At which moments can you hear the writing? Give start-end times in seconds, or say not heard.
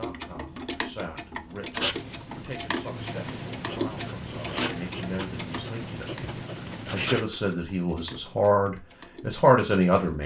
1.7-7.3.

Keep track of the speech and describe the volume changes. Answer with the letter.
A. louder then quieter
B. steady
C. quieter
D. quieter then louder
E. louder
E.